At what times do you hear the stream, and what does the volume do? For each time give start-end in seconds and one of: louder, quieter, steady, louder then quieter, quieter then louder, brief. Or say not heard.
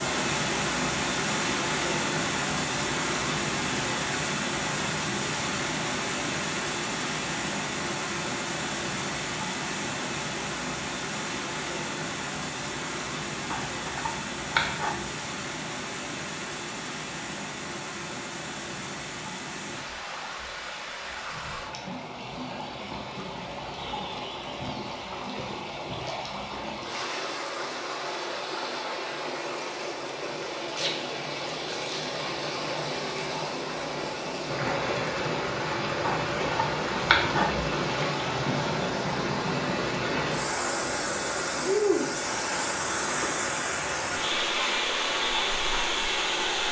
0.0-46.6 quieter then louder.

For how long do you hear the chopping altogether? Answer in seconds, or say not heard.
3 s.